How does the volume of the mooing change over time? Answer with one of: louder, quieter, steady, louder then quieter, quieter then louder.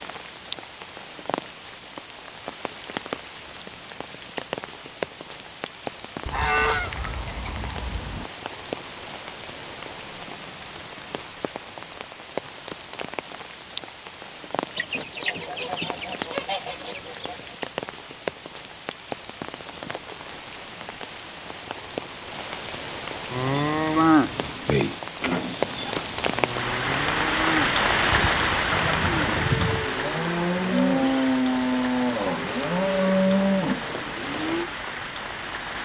quieter then louder.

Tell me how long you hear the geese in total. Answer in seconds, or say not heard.
7 s.